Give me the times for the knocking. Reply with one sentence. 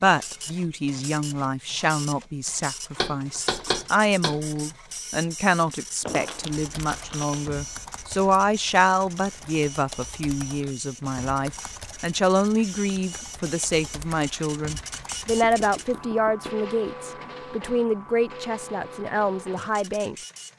The knocking can be heard from 3.0 to 4.4 s and from 15.4 to 16.6 s.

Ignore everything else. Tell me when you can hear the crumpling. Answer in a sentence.
You can hear the crumpling from 6.0 to 7.5 s.